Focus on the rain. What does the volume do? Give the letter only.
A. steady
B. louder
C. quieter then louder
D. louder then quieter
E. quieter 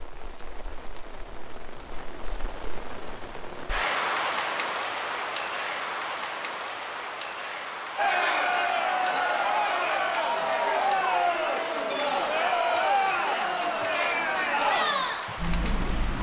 D.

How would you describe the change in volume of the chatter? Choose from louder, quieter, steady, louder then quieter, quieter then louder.
steady.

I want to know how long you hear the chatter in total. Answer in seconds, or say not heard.
8 s.